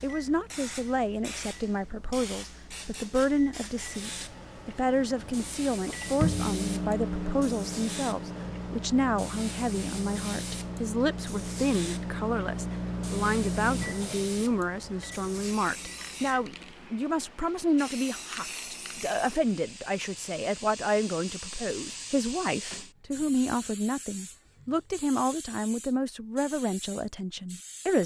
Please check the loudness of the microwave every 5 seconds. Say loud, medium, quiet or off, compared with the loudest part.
quiet, loud, loud, quiet, off, off.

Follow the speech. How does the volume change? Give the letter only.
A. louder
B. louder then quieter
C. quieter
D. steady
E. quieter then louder
D.